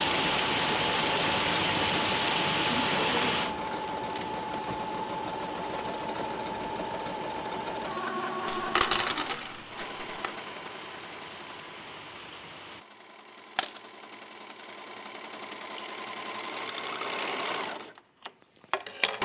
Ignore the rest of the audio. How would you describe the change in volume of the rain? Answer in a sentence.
The loudness of the rain goes down.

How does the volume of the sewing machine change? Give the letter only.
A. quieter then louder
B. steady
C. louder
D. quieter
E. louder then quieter
A.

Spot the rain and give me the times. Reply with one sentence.
The rain can be heard from 0.0 to 12.8 s.